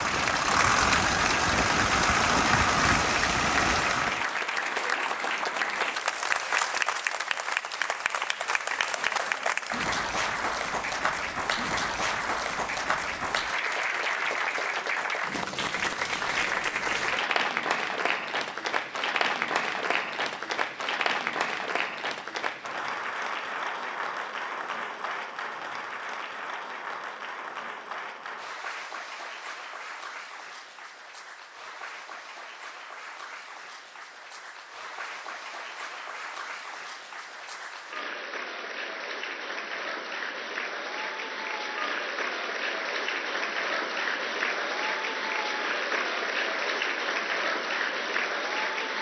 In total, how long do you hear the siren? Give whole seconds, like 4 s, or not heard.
not heard.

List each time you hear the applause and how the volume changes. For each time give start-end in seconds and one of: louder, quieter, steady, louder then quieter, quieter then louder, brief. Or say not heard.
0.0-48.9 quieter then louder.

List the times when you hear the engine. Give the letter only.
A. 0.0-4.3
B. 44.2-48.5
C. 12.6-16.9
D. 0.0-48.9
A.